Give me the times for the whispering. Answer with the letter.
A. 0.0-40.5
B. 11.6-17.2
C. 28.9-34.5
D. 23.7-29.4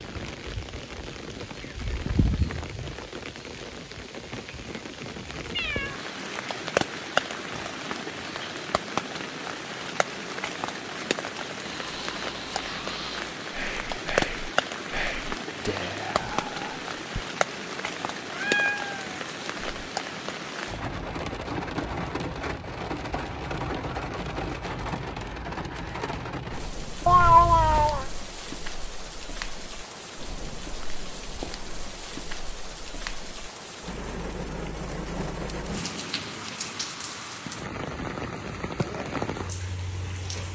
B.